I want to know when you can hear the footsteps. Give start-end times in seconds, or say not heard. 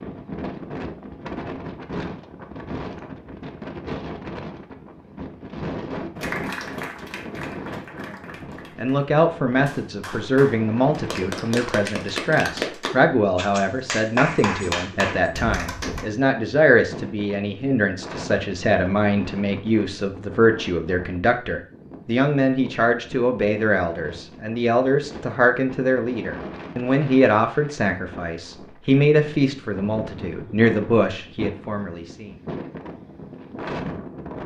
not heard.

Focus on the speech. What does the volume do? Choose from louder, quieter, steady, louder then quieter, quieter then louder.
steady.